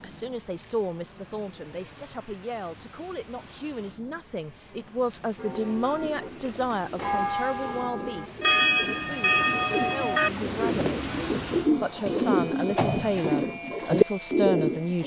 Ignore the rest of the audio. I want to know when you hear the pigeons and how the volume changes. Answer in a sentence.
The pigeons can be heard from 5.5 to 15.0 s, getting louder.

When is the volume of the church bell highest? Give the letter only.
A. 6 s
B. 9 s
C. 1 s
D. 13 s
B.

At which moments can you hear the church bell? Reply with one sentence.
You can hear the church bell from 5.3 to 10.3 s.